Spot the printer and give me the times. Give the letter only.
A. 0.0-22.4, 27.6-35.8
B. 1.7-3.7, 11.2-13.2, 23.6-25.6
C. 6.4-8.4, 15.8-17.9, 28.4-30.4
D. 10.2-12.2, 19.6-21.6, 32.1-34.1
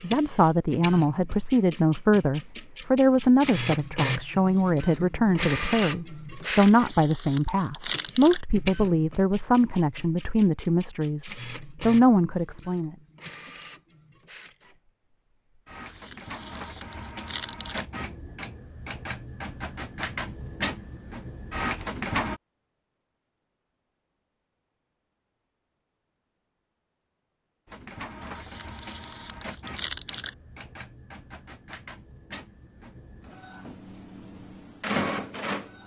A.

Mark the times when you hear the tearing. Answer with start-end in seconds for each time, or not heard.
6.4-8.4, 15.8-17.9, 28.4-30.4.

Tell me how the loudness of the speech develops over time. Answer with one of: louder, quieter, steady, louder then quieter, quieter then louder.
steady.